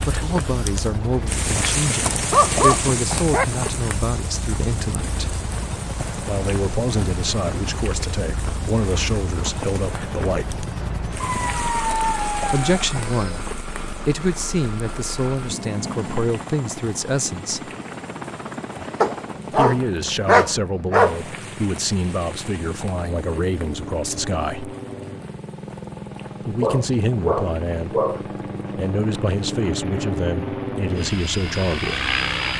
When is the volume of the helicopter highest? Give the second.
32 s.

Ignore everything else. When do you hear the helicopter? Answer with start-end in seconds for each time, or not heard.
0.0-32.5.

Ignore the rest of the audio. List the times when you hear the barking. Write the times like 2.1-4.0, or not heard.
2.1-3.5, 11.2-13.4, 19.0-21.2, 26.6-28.2.